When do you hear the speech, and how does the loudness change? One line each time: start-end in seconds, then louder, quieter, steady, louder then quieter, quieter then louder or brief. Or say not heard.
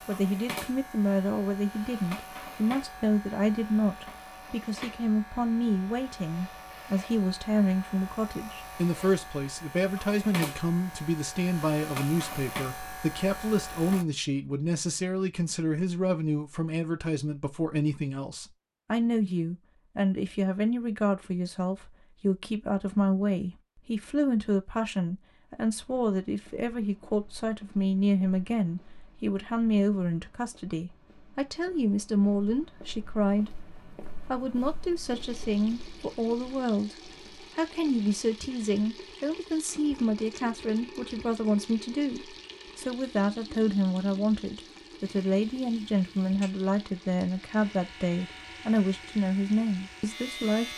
0.1-50.7 steady.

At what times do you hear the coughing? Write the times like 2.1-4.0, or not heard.
not heard.